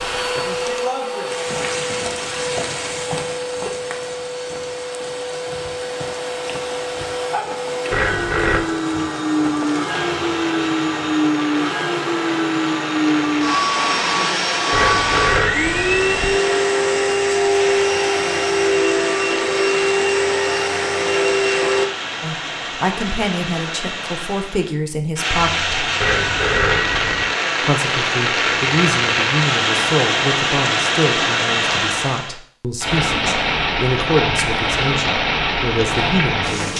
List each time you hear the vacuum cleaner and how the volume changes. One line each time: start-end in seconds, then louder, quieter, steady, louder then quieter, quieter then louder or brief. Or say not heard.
0.0-21.9 louder.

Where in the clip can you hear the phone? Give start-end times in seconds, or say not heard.
7.9-8.7, 14.7-16.4, 26.0-27.4.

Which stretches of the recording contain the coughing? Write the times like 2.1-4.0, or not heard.
not heard.